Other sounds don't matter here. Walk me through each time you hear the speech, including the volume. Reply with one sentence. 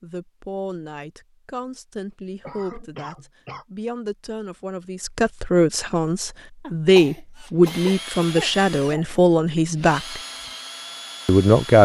The speech can be heard from 0.0 to 10.2 s, getting louder; and briefly from 11.2 to 11.7 s.